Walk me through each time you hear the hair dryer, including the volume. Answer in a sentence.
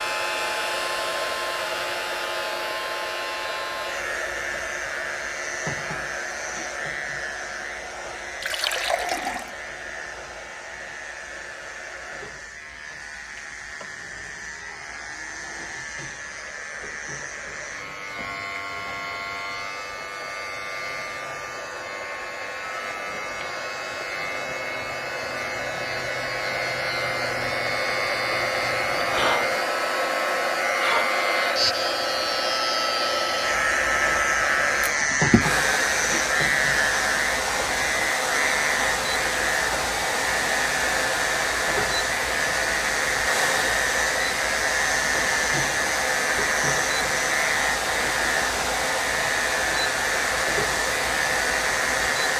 You can hear the hair dryer from 0.0 to 52.3 s, getting quieter then louder.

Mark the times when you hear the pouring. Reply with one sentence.
The pouring can be heard from 8.4 to 9.5 s.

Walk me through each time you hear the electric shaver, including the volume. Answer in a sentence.
The electric shaver can be heard from 0.0 to 52.3 s, getting louder.